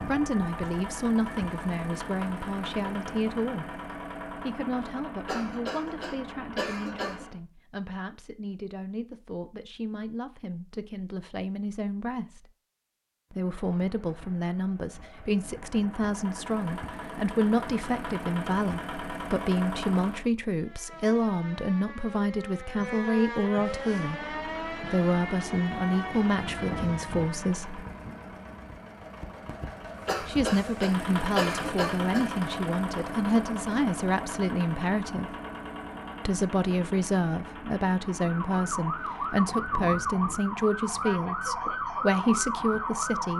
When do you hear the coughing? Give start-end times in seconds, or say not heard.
5.2-7.2, 30.1-32.3.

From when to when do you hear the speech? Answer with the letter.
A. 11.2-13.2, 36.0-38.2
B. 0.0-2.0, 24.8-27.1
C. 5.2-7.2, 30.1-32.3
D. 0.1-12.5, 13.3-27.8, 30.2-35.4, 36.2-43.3
D.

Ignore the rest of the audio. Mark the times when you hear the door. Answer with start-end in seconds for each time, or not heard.
not heard.